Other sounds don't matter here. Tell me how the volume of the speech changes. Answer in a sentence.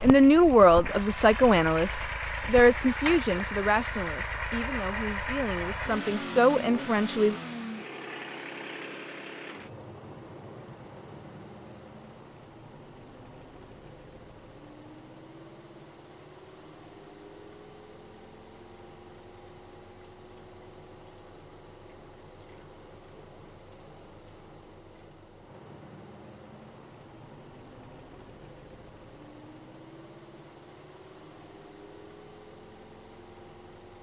The volume of the speech goes down, then up.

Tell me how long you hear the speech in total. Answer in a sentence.
The speech can be heard for 7 seconds in total.